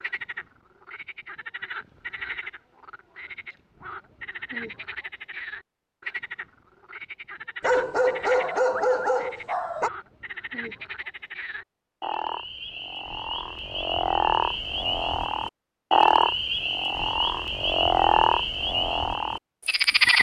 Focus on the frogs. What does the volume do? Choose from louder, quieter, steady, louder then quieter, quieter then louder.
louder.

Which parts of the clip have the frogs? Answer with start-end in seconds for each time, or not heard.
0.0-20.1.